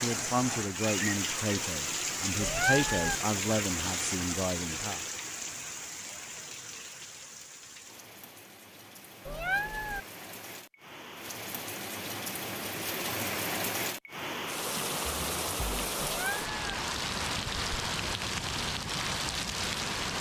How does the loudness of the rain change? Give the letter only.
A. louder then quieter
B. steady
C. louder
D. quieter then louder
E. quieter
D.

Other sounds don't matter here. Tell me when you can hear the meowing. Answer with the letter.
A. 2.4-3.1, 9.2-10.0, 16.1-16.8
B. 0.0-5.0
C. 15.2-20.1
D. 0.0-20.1
A.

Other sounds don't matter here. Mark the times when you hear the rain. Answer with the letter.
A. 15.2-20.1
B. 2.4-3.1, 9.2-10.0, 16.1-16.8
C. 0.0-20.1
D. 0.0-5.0
C.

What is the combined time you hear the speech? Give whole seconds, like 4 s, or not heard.
5 s.